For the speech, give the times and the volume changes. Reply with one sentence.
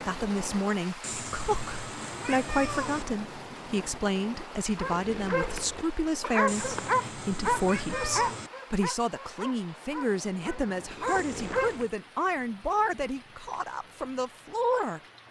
You can hear the speech from 0.1 to 15.0 s, at a steady volume.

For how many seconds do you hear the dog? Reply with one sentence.
The dog can be heard for 7 seconds in total.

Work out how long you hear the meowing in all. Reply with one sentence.
You can hear the meowing for 5 seconds altogether.